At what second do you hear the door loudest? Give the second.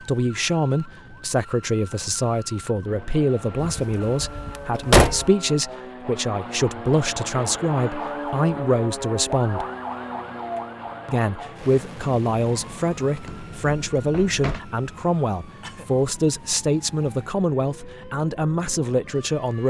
5 s.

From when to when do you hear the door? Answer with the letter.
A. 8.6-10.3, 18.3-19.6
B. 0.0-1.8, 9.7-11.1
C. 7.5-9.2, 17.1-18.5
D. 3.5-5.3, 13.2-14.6
D.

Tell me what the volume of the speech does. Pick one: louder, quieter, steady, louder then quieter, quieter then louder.
steady.